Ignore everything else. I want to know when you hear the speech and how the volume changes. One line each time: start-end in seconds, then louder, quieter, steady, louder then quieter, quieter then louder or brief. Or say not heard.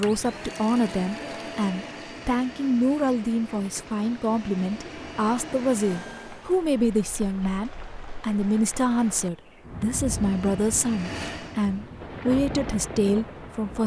0.0-13.8 steady.